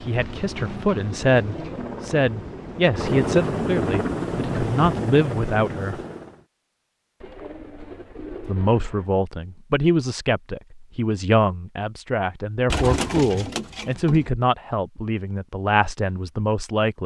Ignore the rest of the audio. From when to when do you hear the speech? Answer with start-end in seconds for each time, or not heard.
0.0-6.0, 8.4-17.0.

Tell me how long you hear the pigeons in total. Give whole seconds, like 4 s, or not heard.
5 s.